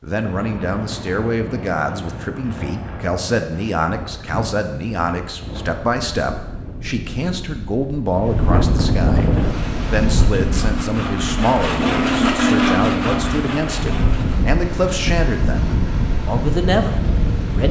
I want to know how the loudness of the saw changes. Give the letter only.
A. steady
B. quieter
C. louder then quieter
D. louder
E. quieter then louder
C.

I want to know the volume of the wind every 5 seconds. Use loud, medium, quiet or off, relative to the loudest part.
medium, loud, loud, loud.